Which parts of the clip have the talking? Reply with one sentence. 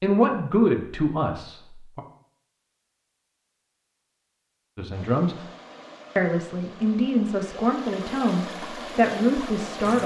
The talking can be heard from 0.0 to 2.0 s, from 4.8 to 5.5 s and from 6.2 to 10.0 s.